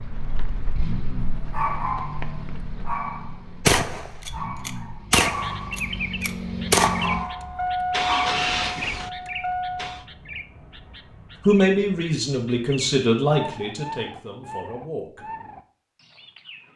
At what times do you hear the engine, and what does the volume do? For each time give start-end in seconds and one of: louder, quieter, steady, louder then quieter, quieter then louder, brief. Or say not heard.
0.3-10.1 quieter then louder.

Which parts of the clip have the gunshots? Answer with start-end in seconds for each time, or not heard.
3.6-7.2.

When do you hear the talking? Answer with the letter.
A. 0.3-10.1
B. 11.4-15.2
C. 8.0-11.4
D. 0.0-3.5
B.